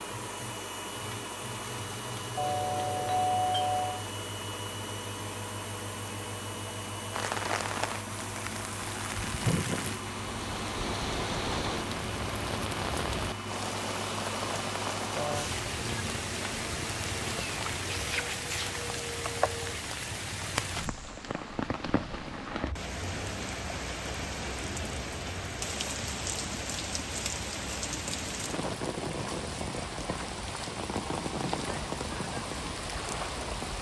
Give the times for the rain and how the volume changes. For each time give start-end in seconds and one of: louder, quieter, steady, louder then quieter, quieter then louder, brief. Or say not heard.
7.1-33.7 steady.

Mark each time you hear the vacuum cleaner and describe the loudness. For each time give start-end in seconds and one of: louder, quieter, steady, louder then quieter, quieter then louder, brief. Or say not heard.
0.0-19.8 steady.